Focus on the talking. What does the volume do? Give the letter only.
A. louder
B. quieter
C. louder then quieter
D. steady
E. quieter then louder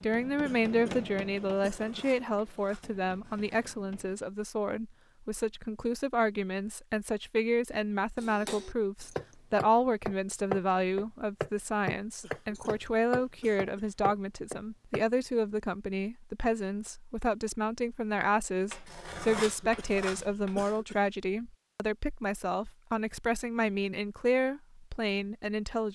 D.